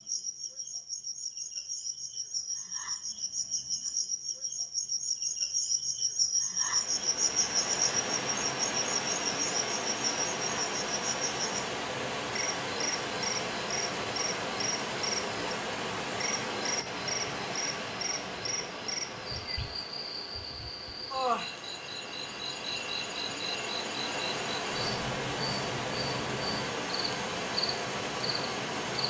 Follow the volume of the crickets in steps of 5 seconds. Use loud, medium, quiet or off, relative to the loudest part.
medium, loud, medium, medium, medium, medium.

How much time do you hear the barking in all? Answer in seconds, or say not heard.
not heard.